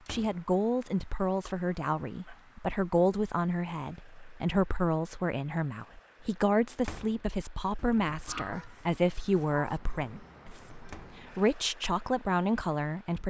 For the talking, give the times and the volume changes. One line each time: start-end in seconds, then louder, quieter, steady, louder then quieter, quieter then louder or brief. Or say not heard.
0.1-13.2 steady.